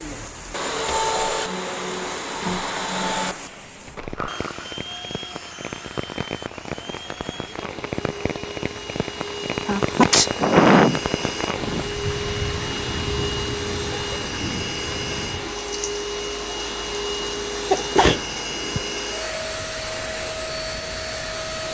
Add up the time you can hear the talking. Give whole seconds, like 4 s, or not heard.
not heard.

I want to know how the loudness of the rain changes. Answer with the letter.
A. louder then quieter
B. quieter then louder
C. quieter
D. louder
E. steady
A.